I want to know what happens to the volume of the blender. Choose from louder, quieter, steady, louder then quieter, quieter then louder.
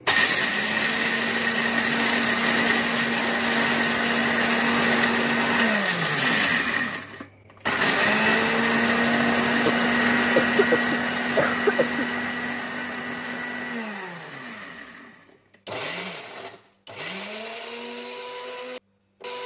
quieter.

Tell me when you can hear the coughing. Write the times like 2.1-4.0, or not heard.
9.7-12.1.